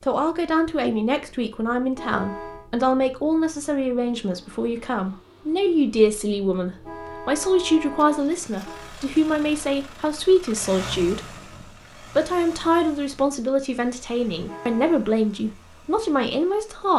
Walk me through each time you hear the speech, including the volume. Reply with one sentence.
The speech can be heard from 0.0 to 16.9 s, at a steady volume.